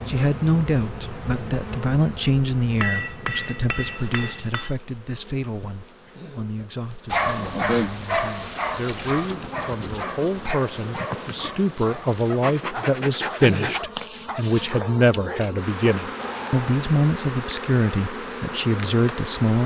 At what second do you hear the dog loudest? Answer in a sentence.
The loudest moment of the dog is at 8 seconds.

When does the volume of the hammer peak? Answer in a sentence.
The loudest moment of the hammer is at 3 seconds.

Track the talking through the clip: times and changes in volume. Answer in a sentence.
You can hear the talking from 0.1 to 19.6 s, getting quieter then louder.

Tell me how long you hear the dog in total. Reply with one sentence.
The dog can be heard for 10 seconds in total.